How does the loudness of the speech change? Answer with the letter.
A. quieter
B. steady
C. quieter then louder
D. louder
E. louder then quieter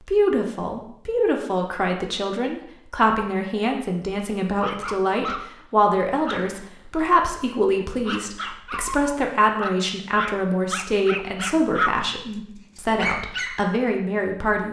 B.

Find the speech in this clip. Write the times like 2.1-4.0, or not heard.
0.0-14.6.